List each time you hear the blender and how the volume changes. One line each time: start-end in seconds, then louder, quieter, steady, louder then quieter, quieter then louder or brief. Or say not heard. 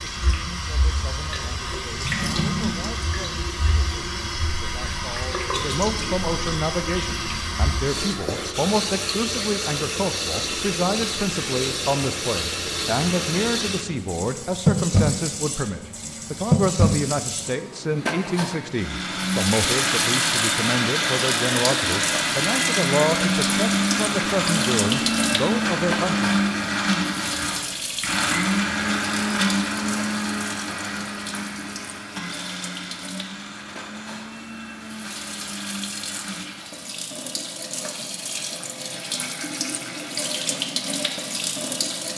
18.7-36.9 quieter.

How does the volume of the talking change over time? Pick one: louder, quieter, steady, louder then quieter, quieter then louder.
louder.